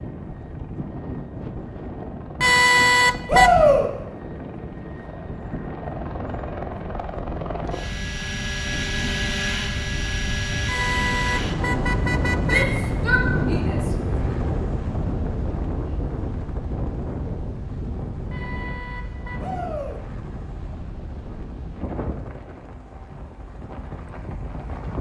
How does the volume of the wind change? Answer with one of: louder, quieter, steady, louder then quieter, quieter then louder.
louder then quieter.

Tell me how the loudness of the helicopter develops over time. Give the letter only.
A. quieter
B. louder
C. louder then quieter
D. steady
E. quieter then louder
C.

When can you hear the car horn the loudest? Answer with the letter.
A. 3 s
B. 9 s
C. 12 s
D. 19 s
A.